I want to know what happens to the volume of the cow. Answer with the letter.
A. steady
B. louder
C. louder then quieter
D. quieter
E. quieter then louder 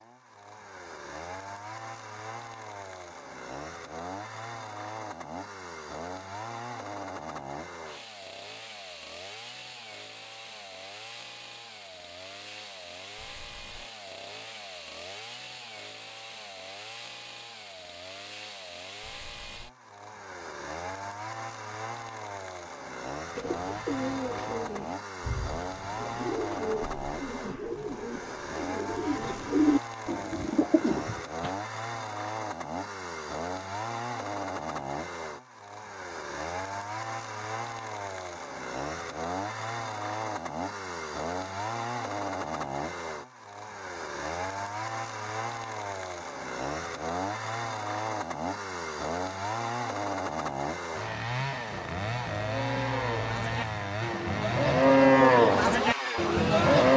C.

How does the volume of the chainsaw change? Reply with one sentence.
The volume of the chainsaw goes up.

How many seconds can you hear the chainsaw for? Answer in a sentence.
You can hear the chainsaw for 57 seconds altogether.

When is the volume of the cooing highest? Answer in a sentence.
The loudest moment of the cooing is at 30 seconds.